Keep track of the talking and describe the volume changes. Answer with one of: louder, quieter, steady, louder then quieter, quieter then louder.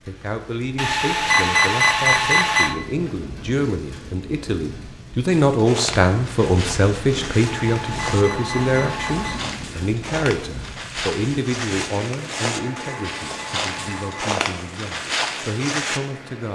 louder then quieter.